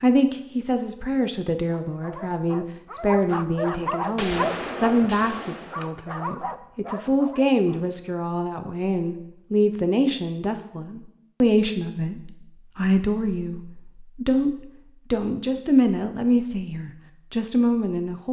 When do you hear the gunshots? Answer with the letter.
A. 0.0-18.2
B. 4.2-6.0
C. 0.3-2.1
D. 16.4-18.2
B.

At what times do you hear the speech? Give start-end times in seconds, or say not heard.
0.0-18.2.